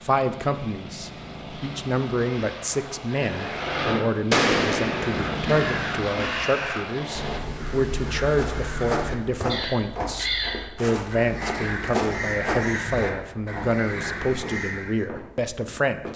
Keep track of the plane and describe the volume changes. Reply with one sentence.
The volume of the plane goes up.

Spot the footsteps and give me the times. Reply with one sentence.
You can hear the footsteps from 8.3 to 16.1 s.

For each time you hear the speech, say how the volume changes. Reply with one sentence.
The speech can be heard from 0.0 to 16.1 s, at a steady volume.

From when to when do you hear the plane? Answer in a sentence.
The plane can be heard from 0.0 to 7.4 s.